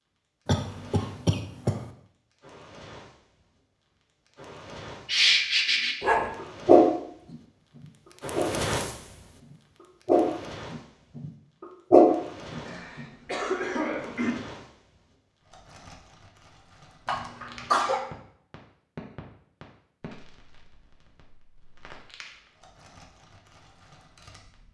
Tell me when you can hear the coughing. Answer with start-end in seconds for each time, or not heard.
0.5-1.9, 12.7-14.3, 17.1-18.1.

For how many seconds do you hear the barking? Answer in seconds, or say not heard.
6 s.